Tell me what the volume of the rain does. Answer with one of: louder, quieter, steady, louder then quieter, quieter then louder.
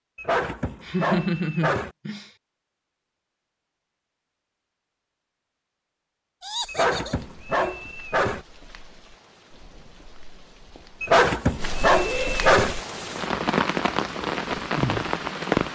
louder.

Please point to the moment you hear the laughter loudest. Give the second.
1 s.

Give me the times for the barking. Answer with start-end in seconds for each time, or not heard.
0.1-1.9, 6.7-8.4, 11.0-12.8.